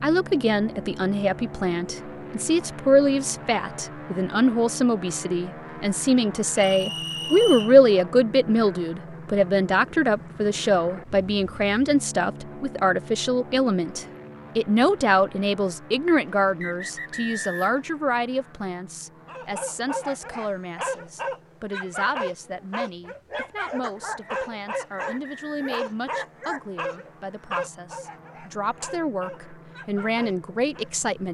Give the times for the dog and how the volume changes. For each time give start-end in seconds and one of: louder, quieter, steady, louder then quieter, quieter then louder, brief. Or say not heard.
19.2-30.9 quieter.